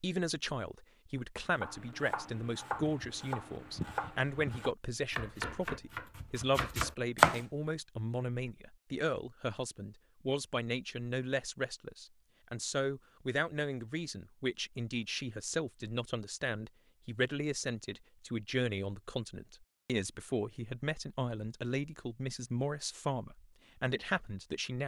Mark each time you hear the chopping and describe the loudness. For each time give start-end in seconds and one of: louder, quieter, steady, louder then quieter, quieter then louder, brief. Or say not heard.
1.6-7.4 steady.